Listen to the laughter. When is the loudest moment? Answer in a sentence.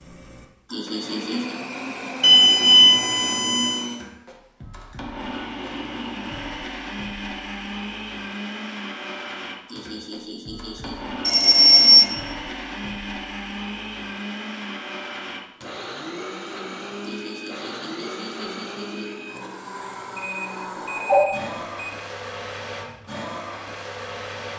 The volume of the laughter peaks at 1 second.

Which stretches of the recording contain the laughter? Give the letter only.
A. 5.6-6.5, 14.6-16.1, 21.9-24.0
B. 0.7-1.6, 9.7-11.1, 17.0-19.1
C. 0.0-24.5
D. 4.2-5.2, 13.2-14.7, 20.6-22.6
B.